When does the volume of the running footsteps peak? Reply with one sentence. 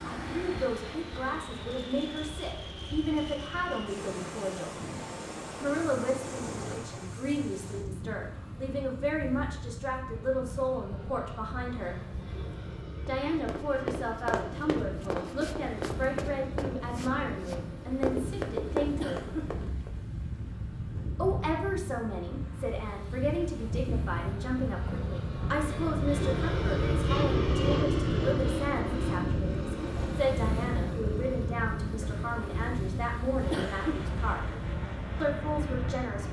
The loudest moment of the running footsteps is at 19 seconds.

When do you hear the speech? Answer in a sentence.
The speech can be heard from 0.0 to 4.8 s, from 5.6 to 12.0 s, from 13.1 to 19.3 s, from 21.1 to 34.5 s and from 35.2 to 36.2 s.